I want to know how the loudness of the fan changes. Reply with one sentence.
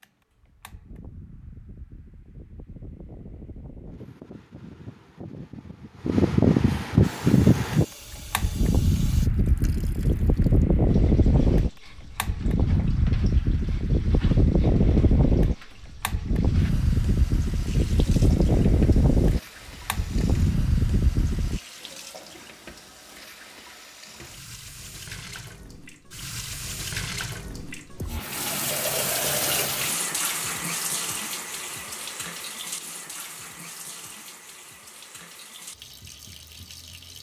The volume of the fan goes up.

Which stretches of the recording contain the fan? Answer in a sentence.
The fan can be heard from 0.0 to 21.6 s.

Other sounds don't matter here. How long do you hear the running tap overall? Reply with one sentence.
You can hear the running tap for 30 seconds altogether.